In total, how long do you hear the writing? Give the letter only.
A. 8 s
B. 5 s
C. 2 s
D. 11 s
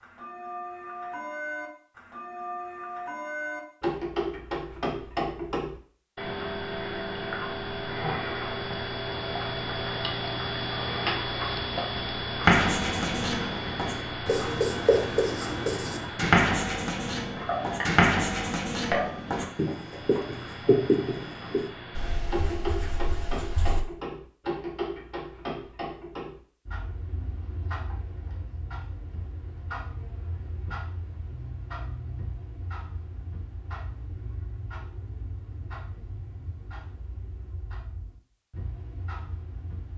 D.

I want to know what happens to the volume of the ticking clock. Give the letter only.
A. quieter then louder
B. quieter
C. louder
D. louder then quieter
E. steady
B.